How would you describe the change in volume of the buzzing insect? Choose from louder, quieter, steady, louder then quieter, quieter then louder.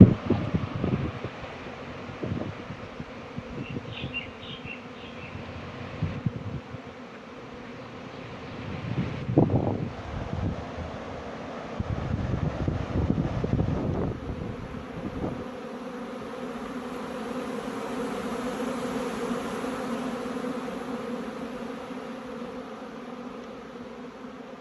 louder.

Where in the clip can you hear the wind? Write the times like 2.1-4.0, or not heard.
0.0-15.6.